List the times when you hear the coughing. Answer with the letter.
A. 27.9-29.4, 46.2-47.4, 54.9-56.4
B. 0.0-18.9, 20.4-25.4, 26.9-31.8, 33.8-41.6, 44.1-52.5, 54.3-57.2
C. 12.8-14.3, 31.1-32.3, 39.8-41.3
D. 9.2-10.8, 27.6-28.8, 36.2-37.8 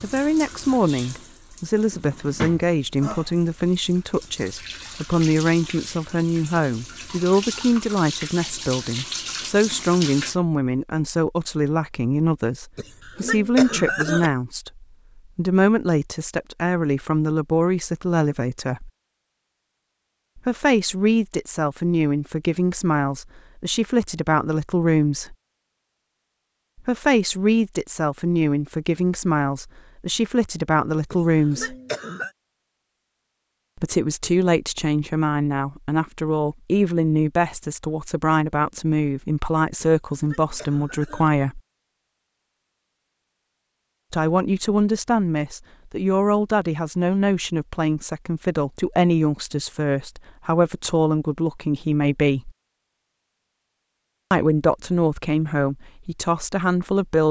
C.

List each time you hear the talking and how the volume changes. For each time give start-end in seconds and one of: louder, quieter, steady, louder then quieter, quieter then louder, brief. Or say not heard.
0.0-18.9 steady
20.4-25.4 steady
26.9-31.8 steady
33.8-41.6 steady
44.1-52.5 steady
54.3-57.2 brief.